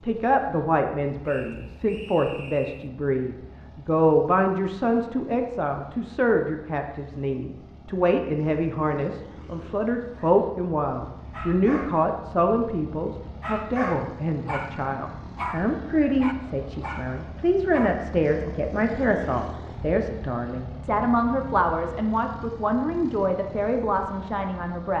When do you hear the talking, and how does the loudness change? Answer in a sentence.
The talking can be heard from 0.0 to 24.9 s, at a steady volume.